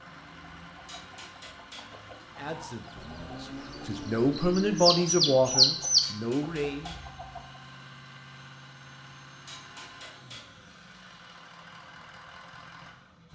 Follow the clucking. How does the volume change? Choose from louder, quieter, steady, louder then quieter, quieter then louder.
louder.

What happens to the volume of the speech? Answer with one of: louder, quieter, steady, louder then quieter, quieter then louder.
louder then quieter.